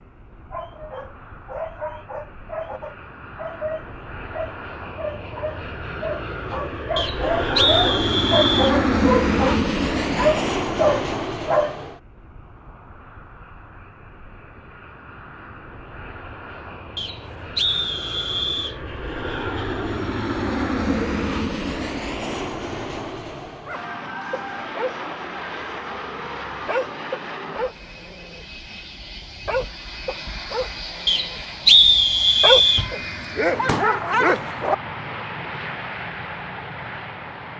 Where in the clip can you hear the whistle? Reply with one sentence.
You can hear the whistle from 7.0 to 8.8 s, from 16.9 to 18.8 s and from 31.1 to 32.9 s.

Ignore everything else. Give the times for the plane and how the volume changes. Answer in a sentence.
The plane can be heard from 0.1 to 37.5 s, getting louder then quieter.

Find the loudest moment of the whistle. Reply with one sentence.
The loudest moment of the whistle is at 32 seconds.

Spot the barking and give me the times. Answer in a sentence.
You can hear the barking from 0.5 to 11.8 s and from 23.6 to 34.8 s.